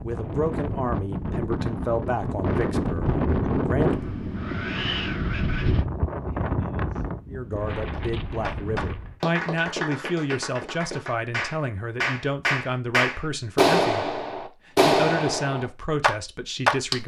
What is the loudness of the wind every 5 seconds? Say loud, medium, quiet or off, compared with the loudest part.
loud, loud, off, off.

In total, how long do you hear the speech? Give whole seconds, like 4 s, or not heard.
14 s.